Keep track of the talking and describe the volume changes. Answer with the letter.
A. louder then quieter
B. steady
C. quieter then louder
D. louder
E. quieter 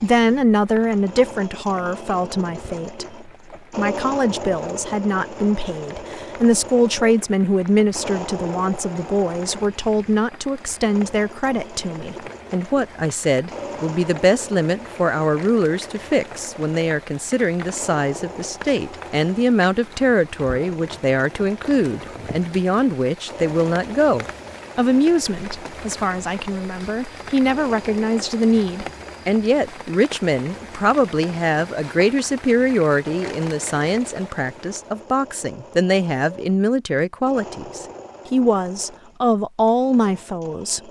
B.